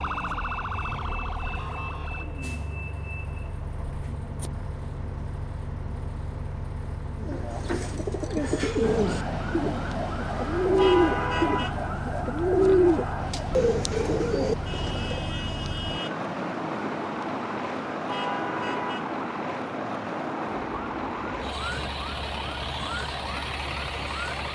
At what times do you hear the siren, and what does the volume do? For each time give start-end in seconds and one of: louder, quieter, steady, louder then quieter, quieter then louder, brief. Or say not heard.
0.0-2.2 brief
8.8-24.4 quieter.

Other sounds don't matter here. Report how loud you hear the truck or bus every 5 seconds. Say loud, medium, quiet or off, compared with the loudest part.
medium, medium, medium, loud, loud.